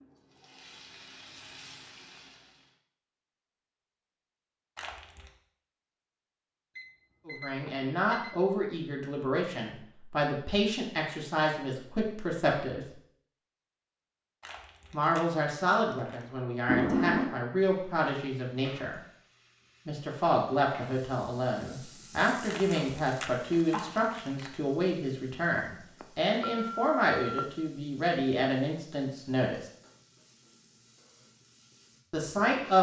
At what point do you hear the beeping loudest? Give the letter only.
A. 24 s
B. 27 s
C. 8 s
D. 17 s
D.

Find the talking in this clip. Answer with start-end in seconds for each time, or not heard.
7.2-12.8, 14.9-19.0, 19.9-29.6, 32.1-32.7.